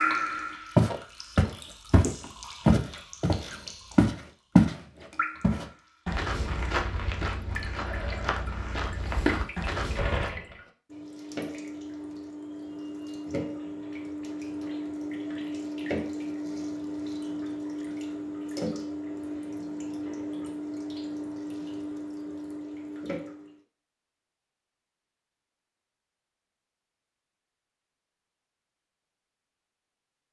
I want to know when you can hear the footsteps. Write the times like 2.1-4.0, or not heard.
0.8-10.3.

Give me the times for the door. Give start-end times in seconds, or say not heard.
9.8-10.6.